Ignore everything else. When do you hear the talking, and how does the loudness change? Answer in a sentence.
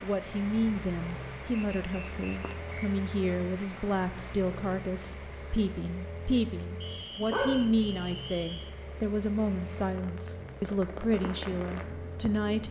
The talking can be heard from 0.0 to 12.6 s, at a steady volume.